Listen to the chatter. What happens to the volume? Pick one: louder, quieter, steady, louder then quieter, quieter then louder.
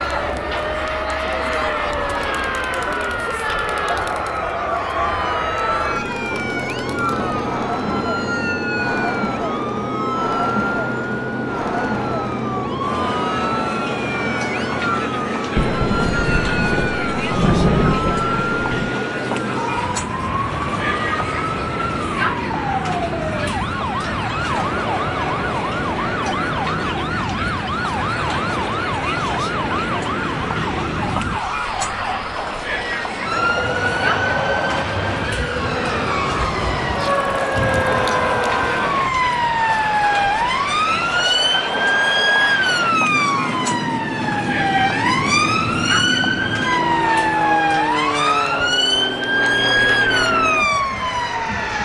steady.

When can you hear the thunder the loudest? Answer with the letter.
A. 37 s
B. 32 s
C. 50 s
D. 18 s
D.